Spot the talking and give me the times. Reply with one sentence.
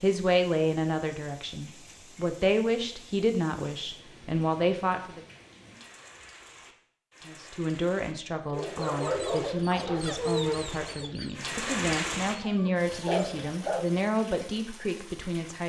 You can hear the talking from 0.0 to 5.2 s and from 7.2 to 15.6 s.